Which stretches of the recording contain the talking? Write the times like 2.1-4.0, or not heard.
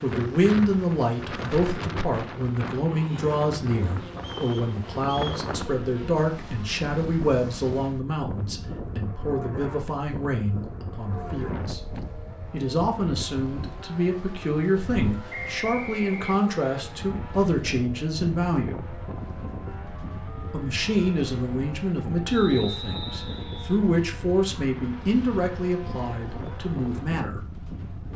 0.0-11.8, 12.5-18.8, 20.4-27.4.